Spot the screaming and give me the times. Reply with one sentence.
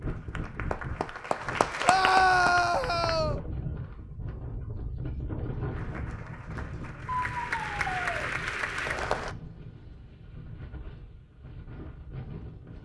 The screaming can be heard from 1.8 to 3.4 s and from 7.2 to 8.3 s.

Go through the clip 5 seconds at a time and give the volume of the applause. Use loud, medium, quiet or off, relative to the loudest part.
loud, loud, off.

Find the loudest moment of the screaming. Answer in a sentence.
The loudest moment of the screaming is at 2 seconds.